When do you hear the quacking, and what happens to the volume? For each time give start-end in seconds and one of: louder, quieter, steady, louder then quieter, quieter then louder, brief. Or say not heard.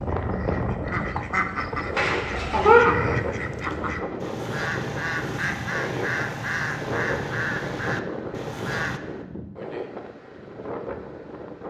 0.0-9.0 steady.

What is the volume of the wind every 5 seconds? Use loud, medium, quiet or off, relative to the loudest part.
loud, loud, medium.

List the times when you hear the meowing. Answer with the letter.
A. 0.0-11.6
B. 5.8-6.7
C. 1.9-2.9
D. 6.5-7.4
C.